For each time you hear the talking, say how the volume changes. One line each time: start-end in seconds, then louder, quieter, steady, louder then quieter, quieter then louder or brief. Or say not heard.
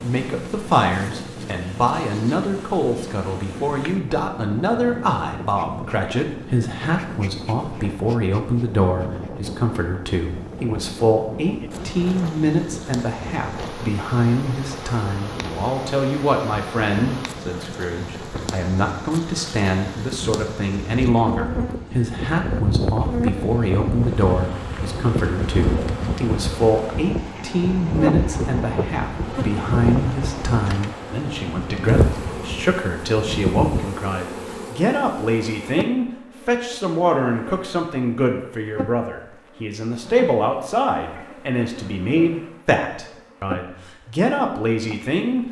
0.0-45.4 steady.